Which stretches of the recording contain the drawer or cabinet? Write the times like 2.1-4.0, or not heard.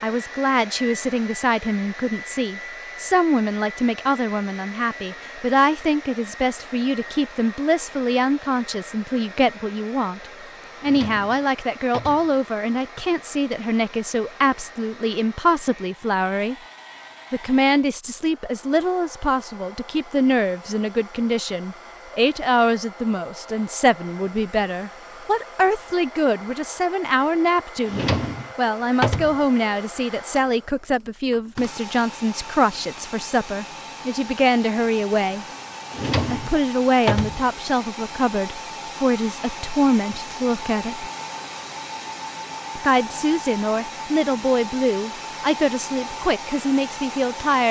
10.8-12.3, 27.9-29.4, 35.9-37.5.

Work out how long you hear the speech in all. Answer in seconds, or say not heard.
44 s.